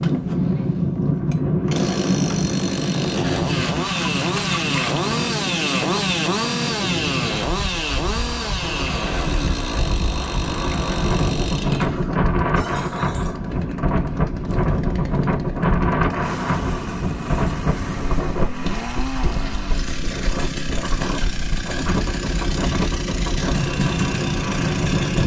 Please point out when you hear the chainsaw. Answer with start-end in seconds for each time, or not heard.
0.0-25.2.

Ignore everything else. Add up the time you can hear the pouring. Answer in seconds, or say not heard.
4 s.